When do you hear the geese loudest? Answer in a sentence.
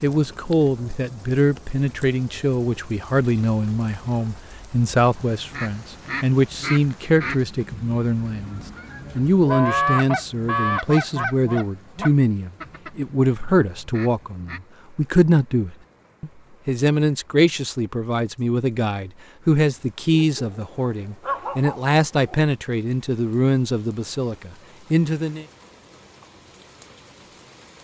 The loudest moment of the geese is at 10 seconds.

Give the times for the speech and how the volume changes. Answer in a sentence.
The speech can be heard from 0.0 to 25.4 s, at a steady volume.